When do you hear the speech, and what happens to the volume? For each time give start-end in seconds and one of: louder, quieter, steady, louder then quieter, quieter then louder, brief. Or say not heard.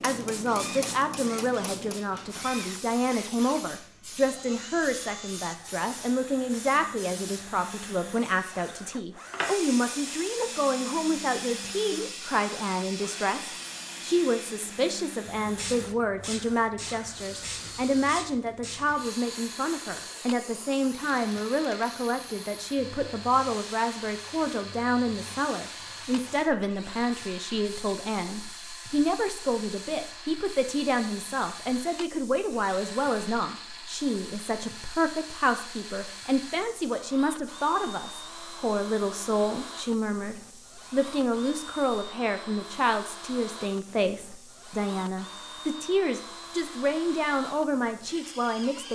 0.0-48.9 steady.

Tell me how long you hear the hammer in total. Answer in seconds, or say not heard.
not heard.